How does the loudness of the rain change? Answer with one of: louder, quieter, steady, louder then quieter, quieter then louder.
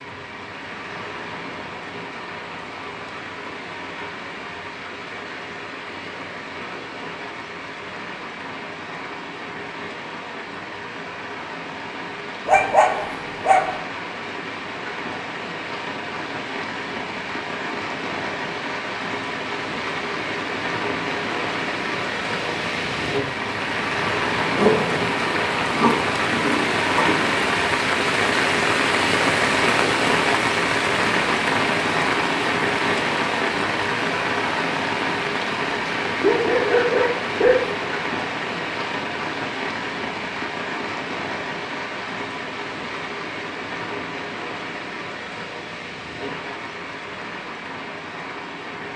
louder then quieter.